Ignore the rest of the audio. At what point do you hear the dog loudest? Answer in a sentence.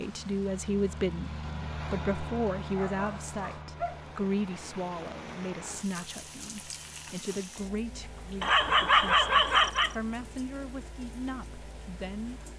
The volume of the dog peaks at 9 seconds.